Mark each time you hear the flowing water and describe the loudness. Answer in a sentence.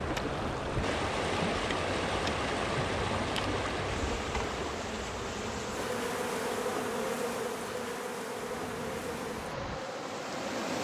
The flowing water can be heard from 0.0 to 10.8 s, getting quieter then louder.